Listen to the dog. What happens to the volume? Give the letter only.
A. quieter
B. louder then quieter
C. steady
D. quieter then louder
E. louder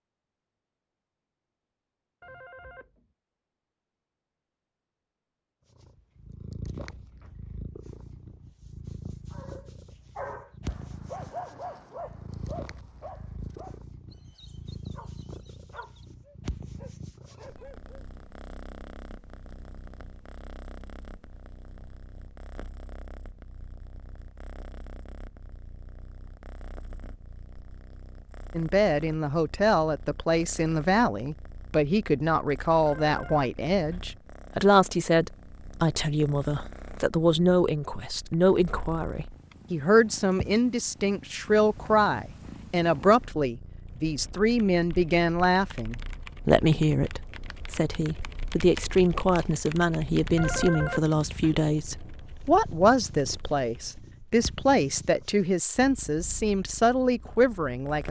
A.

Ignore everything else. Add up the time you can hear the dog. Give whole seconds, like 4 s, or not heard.
9 s.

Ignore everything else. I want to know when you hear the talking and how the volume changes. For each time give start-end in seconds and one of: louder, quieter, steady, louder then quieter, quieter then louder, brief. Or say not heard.
28.6-58.0 steady.